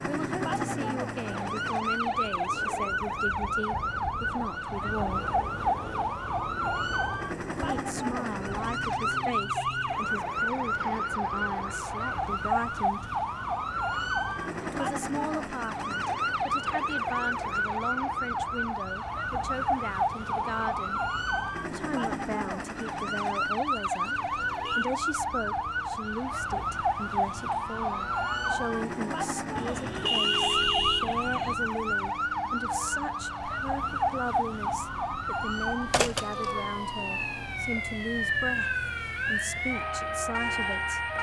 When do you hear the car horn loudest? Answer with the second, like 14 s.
30 s.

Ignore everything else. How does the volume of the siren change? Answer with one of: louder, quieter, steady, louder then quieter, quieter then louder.
steady.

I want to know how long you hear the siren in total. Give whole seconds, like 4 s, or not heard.
41 s.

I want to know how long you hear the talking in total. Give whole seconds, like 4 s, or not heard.
37 s.